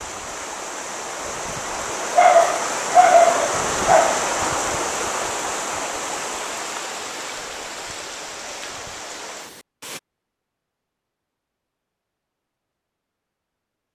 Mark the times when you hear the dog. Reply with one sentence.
The dog can be heard from 2.1 to 4.2 s.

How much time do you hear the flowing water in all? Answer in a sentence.
You can hear the flowing water for 10 seconds altogether.